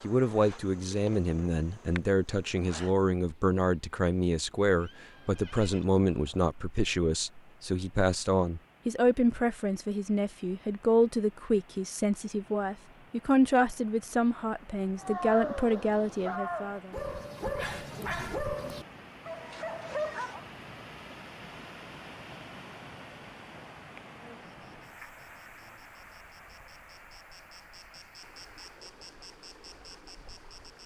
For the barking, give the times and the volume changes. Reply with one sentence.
The barking can be heard from 14.9 to 20.4 s, at a steady volume.